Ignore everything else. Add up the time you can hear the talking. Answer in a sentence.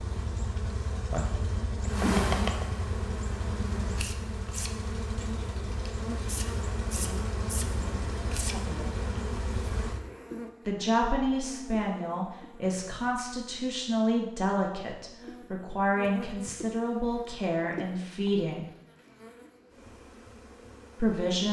You can hear the talking for 9 seconds altogether.